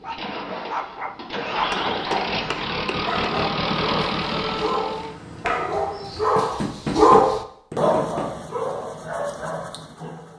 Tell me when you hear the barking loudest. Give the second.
7 s.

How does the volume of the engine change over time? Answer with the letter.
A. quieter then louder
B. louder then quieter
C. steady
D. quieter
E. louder
E.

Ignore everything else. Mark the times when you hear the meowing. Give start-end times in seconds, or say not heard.
4.2-6.2.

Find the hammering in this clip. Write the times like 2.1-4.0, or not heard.
1.5-3.1, 6.3-8.3.